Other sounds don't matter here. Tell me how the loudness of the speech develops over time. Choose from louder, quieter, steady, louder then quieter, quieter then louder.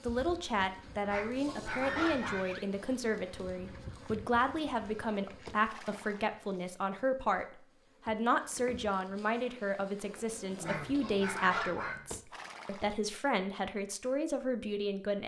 steady.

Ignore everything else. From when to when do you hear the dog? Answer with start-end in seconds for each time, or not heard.
1.1-2.5, 10.6-12.1.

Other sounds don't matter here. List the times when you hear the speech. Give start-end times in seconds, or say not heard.
0.0-15.2.